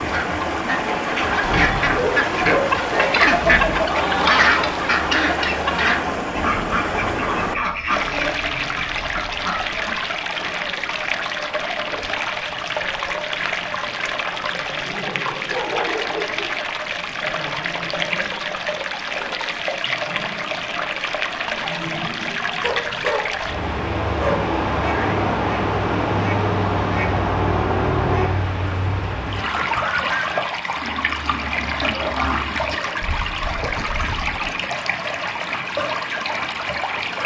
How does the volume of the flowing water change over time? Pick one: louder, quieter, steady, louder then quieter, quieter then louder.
steady.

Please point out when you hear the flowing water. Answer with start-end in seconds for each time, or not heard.
0.0-37.2.